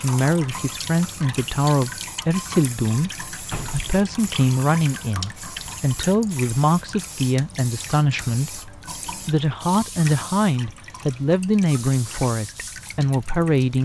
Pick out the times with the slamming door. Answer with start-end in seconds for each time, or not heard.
3.5-4.0.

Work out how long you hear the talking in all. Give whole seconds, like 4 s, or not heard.
14 s.